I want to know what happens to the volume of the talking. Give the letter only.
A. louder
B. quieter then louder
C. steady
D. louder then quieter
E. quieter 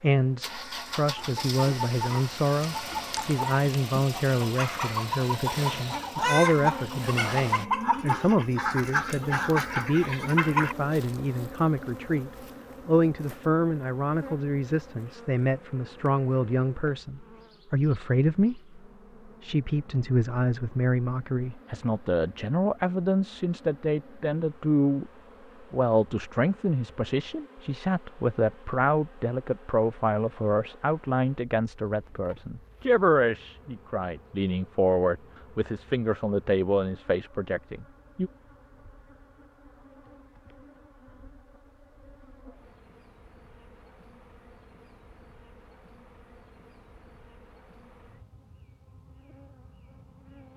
C.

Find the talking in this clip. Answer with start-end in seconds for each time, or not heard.
0.0-25.1, 25.7-38.3.